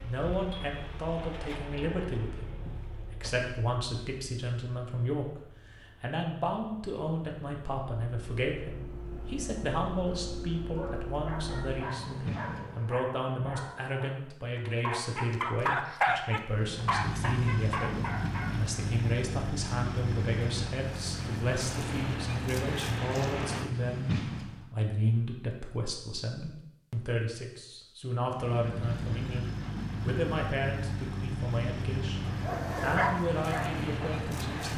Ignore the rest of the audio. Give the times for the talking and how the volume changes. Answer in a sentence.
You can hear the talking from 0.0 to 34.7 s, at a steady volume.